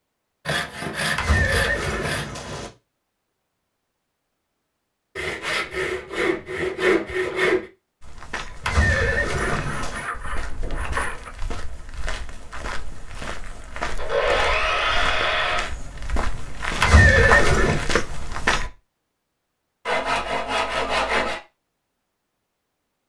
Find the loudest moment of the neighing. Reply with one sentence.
The loudest moment of the neighing is at 17 seconds.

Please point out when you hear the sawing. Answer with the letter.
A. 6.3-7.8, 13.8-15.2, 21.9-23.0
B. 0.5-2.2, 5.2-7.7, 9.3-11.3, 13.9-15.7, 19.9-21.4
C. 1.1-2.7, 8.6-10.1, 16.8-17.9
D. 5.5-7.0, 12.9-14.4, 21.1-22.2
B.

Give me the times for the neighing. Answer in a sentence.
You can hear the neighing from 1.1 to 2.7 s, from 8.6 to 10.1 s and from 16.8 to 17.9 s.